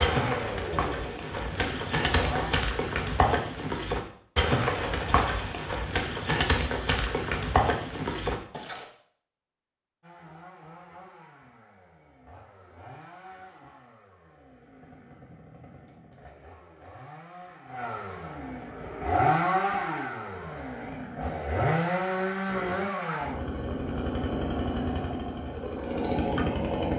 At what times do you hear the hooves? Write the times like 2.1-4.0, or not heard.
0.0-8.8.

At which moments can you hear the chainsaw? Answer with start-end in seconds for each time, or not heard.
0.0-2.5, 10.0-26.9.